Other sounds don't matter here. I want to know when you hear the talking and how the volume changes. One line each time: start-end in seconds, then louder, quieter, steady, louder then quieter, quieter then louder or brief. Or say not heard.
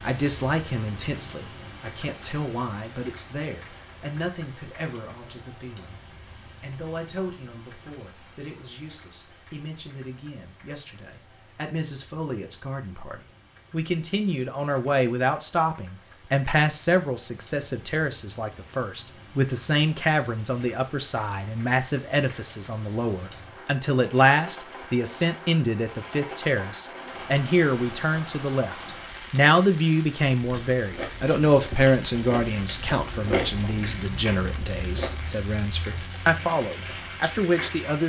0.0-38.0 louder.